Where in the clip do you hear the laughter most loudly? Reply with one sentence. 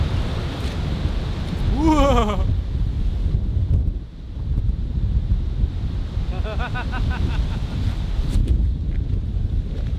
The volume of the laughter peaks at 2 seconds.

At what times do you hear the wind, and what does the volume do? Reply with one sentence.
You can hear the wind from 0.0 to 9.9 s, at a steady volume.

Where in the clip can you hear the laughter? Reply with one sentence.
The laughter can be heard from 1.7 to 2.5 s and from 6.3 to 8.0 s.